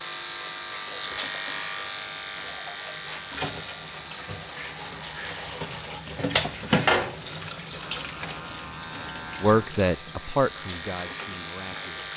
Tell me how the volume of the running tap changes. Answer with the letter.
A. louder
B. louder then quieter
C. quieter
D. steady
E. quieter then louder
B.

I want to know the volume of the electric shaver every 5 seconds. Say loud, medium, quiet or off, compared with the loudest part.
loud, medium, loud.